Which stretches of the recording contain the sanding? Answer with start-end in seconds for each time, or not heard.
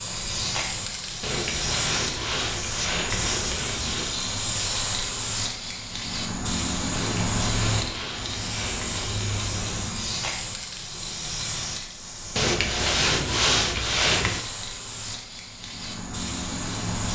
1.2-4.1, 6.9-9.8, 12.3-14.4.